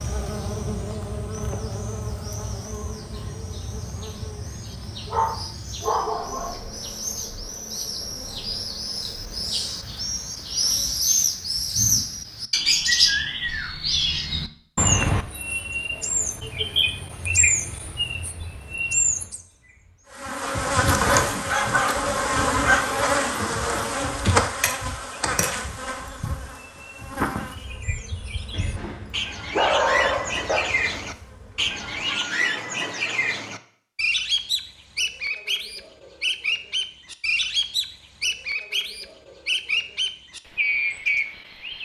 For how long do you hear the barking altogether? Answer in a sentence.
The barking can be heard for 5 seconds in total.